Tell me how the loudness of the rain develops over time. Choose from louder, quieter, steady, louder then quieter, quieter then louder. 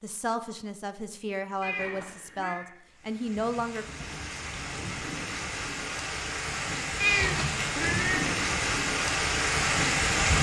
louder.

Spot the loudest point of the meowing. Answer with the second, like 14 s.
7 s.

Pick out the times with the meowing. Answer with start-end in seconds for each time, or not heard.
1.6-2.7, 7.0-8.2.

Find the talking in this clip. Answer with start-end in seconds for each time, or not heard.
0.0-4.0.